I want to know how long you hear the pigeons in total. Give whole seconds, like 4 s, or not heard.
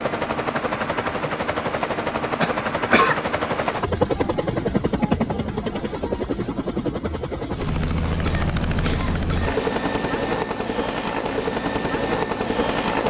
not heard.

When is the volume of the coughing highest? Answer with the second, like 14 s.
3 s.